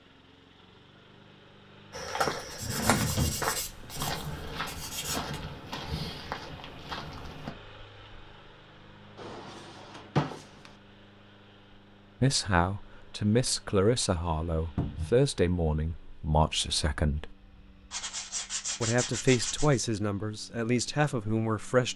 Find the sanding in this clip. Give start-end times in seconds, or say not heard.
2.5-5.4, 17.9-19.8.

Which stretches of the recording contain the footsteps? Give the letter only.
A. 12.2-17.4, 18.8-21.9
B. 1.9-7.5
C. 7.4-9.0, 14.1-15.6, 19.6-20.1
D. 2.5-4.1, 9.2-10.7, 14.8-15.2
B.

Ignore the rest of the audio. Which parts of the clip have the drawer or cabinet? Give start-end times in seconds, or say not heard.
2.5-4.1, 9.2-10.7, 14.8-15.2.